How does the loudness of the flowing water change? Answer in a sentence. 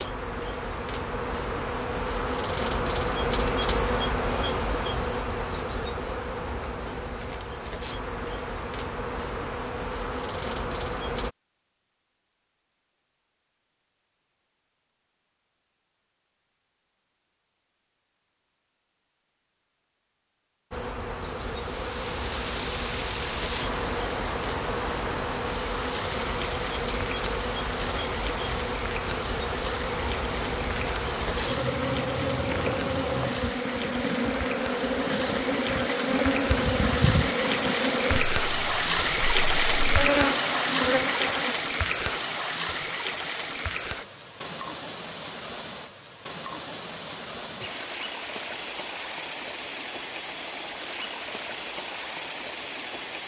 The volume of the flowing water goes up, then down.